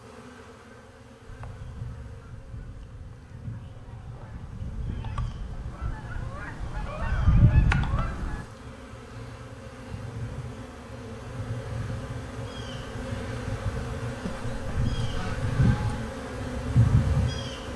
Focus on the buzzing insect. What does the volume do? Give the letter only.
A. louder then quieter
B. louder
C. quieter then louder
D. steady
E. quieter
B.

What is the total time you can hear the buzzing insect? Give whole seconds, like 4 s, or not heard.
18 s.